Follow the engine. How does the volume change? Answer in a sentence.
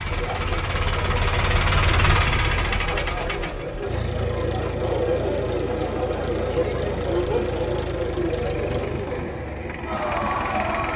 The loudness of the engine goes down.